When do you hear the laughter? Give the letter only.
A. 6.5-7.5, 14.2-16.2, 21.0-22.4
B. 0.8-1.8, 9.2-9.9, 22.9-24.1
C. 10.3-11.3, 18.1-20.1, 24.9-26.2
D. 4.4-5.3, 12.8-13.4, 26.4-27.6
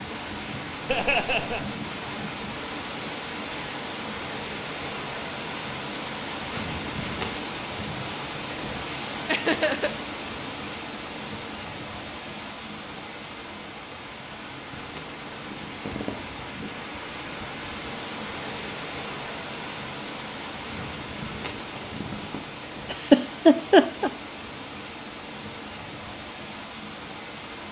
B.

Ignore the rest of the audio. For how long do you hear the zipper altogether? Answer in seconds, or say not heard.
4 s.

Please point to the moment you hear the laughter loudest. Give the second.
24 s.